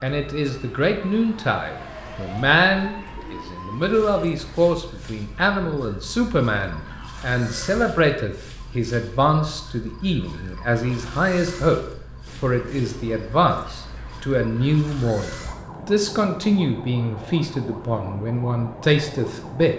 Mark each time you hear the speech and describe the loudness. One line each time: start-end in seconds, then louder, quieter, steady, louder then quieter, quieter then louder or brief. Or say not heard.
0.0-19.7 steady.